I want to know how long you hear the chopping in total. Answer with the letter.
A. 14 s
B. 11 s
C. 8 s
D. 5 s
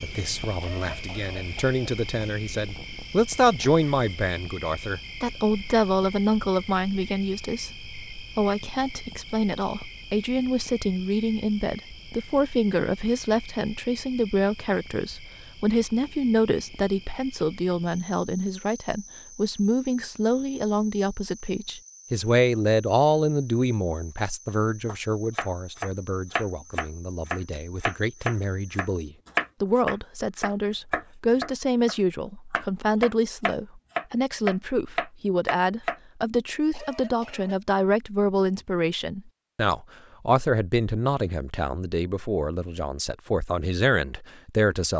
B.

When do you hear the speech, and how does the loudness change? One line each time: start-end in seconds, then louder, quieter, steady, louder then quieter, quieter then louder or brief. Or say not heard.
0.0-44.9 steady.